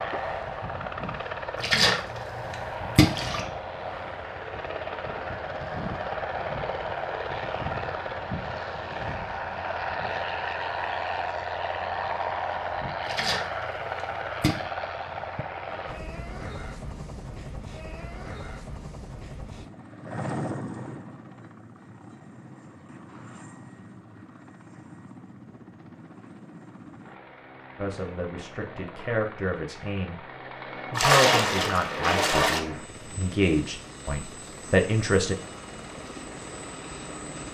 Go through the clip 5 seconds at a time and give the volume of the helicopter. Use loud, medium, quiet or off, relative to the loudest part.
loud, loud, loud, medium, medium, quiet, medium, medium.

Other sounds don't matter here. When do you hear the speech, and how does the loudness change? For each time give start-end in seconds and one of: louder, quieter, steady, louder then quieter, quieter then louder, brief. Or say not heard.
27.8-30.2 brief
30.9-35.4 louder.